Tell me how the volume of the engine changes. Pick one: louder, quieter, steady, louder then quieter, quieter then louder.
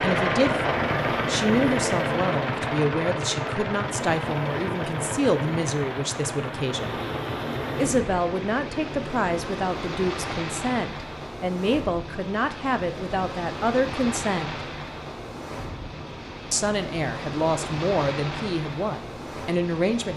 quieter.